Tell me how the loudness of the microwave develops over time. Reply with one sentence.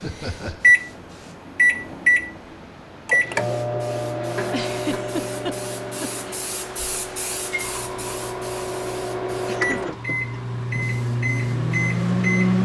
The volume of the microwave goes down, then up.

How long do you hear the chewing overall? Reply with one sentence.
The chewing can't be heard in this clip.